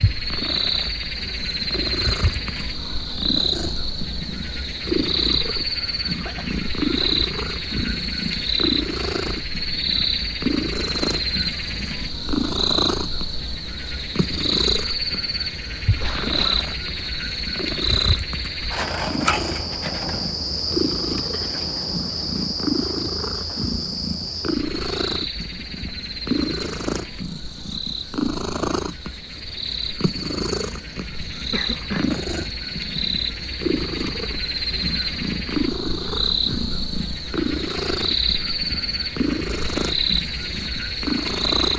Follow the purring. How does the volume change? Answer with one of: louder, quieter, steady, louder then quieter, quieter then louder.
steady.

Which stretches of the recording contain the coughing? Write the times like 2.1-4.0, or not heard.
6.2-7.1, 16.0-16.6, 31.5-32.0.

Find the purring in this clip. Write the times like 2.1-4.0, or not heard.
0.0-41.7.